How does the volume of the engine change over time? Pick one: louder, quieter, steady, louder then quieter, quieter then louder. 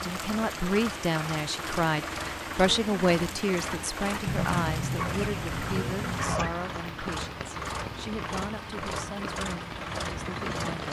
steady.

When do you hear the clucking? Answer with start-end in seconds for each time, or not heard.
4.2-6.5.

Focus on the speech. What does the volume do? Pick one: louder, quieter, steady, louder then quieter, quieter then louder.
quieter.